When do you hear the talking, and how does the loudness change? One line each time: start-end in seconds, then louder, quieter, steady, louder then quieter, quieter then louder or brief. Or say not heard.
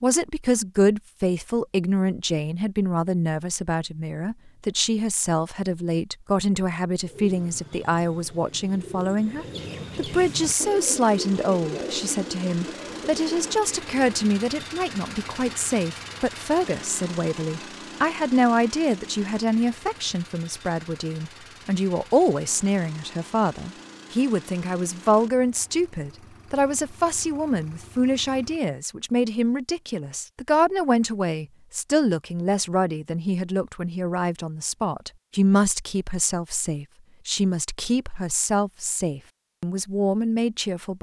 0.0-40.9 steady.